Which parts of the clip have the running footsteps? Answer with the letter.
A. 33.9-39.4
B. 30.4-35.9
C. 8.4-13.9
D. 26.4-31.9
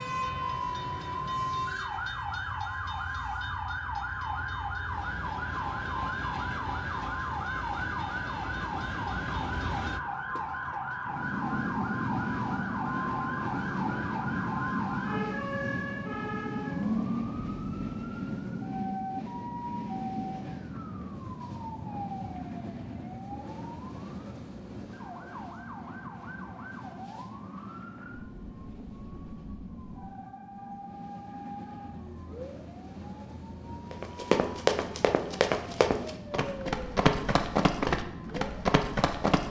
A.